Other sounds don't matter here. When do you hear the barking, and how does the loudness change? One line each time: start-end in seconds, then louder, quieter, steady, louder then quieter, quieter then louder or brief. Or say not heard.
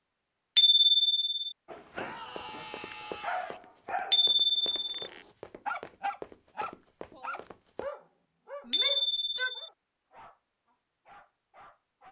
1.6-12.0 quieter.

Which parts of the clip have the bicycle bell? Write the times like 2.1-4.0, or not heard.
0.6-1.5, 4.1-4.8, 8.7-9.5.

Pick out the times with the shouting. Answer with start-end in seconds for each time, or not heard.
1.9-3.6, 8.6-9.6.